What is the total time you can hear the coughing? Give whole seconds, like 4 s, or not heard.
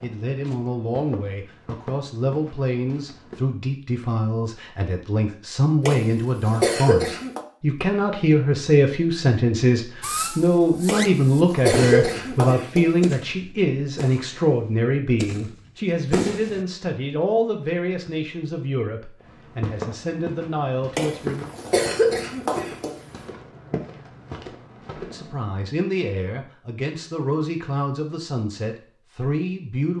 6 s.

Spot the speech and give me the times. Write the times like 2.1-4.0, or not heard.
0.0-21.5, 24.9-29.9.